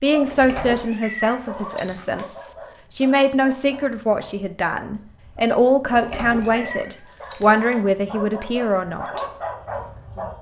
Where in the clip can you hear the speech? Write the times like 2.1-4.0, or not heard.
0.0-9.2.